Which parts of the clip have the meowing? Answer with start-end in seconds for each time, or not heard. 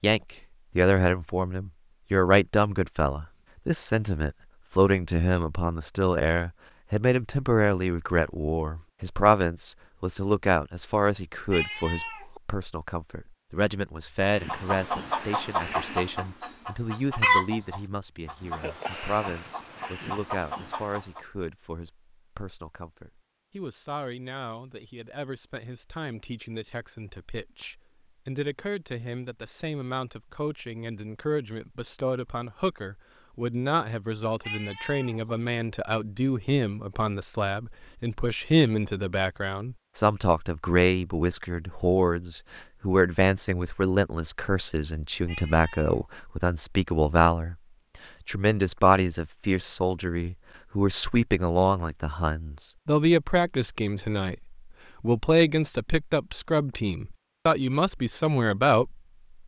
11.5-12.4, 34.4-35.3, 45.2-46.1.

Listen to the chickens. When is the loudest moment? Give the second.
17 s.